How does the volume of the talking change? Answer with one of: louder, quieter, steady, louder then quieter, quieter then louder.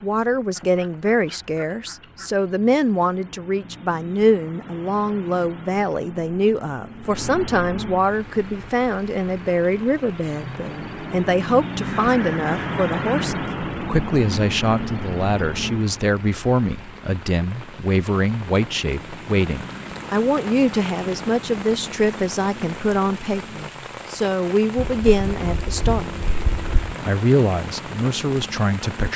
steady.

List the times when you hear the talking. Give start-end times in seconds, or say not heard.
0.0-29.1.